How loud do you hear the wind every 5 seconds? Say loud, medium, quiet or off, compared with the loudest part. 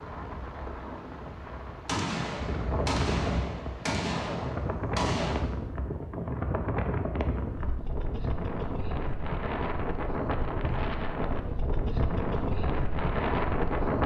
medium, loud, loud.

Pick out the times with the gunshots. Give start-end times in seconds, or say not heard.
1.9-5.4.